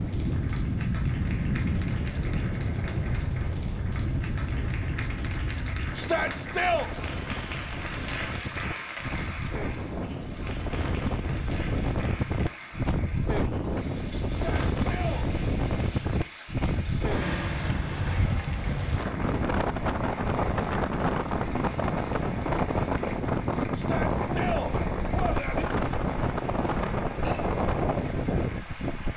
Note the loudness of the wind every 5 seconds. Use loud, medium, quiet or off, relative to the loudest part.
loud, medium, loud, loud, loud, loud.